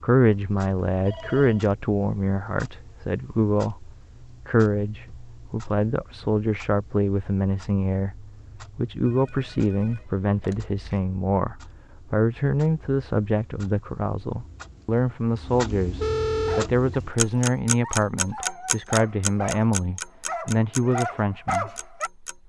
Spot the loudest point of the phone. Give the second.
16 s.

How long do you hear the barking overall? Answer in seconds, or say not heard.
6 s.